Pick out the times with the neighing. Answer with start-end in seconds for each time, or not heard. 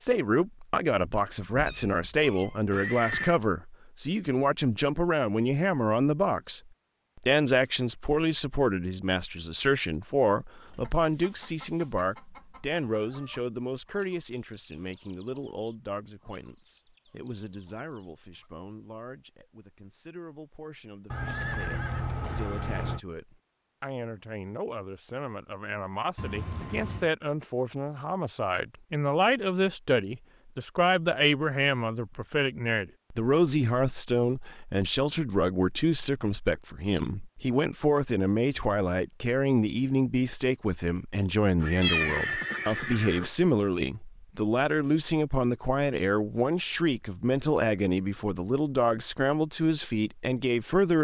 2.7-3.4, 21.1-23.0, 41.5-43.3.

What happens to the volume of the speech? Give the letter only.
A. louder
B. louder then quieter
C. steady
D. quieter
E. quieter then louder
E.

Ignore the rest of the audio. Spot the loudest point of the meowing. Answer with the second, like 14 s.
42 s.